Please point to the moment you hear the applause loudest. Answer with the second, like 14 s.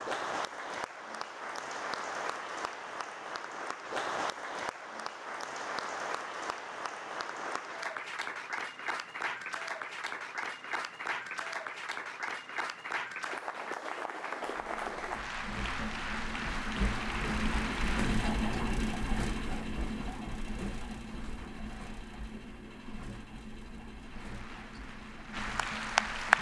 26 s.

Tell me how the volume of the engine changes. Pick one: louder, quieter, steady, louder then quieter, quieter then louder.
louder then quieter.